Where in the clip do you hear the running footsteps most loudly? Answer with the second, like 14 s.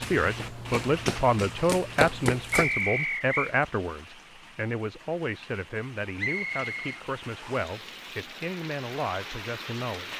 2 s.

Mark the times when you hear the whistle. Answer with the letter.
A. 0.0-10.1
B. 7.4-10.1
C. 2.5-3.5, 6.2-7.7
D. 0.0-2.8
C.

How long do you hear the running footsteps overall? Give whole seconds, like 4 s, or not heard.
3 s.